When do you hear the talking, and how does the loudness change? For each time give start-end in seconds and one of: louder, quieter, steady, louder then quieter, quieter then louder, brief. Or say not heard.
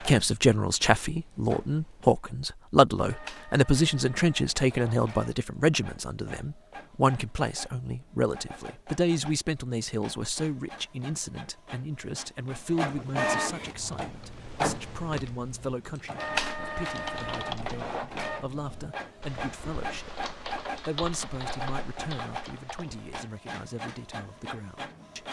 0.0-25.2 quieter.